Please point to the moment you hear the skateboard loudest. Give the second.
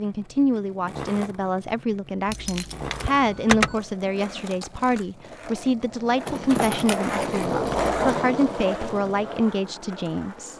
8 s.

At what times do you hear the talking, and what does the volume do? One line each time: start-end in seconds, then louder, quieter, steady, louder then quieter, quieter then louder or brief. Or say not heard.
0.0-10.5 steady.